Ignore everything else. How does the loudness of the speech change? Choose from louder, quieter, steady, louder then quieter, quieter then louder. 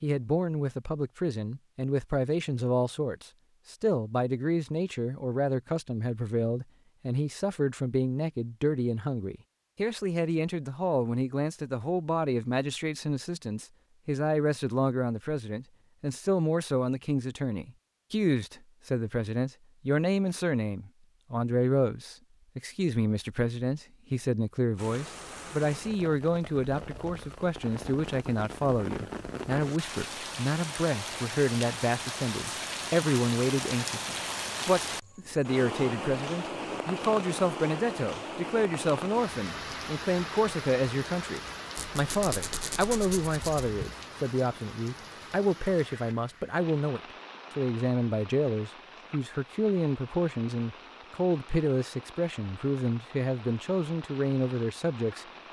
steady.